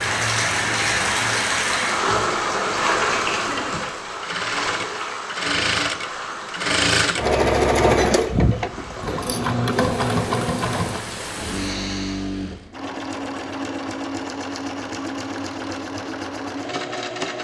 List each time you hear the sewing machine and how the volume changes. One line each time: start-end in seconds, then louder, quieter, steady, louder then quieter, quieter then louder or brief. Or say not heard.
0.0-17.3 louder then quieter.